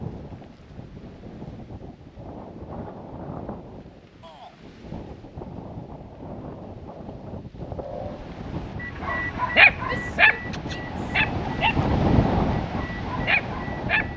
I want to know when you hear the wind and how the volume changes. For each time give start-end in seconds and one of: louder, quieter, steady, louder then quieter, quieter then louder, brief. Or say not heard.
0.0-14.1 louder.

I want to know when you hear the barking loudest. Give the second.
10 s.